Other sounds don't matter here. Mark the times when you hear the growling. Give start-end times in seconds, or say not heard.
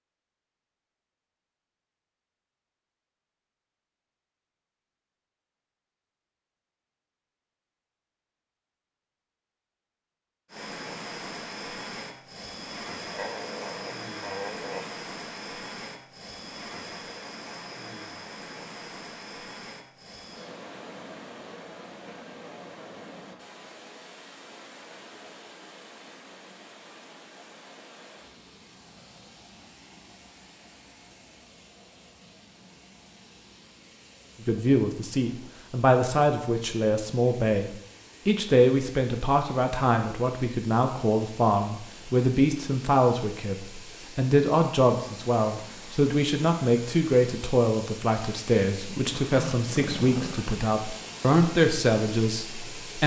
13.1-14.9, 49.2-50.5.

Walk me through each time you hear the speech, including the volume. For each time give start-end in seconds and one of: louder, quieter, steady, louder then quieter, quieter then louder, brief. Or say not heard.
34.4-53.0 steady.